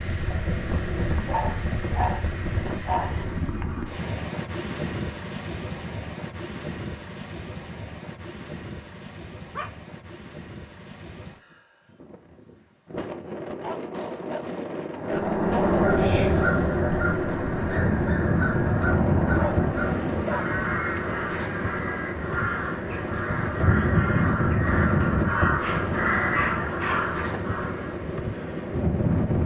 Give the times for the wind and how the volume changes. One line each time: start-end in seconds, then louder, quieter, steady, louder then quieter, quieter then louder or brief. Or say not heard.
0.0-29.4 quieter then louder.